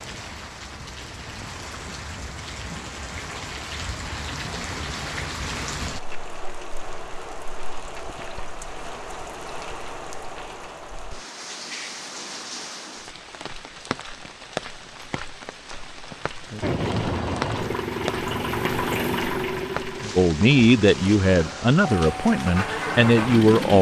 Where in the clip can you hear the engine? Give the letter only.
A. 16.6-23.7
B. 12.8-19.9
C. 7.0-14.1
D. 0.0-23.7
A.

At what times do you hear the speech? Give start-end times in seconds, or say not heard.
20.1-23.7.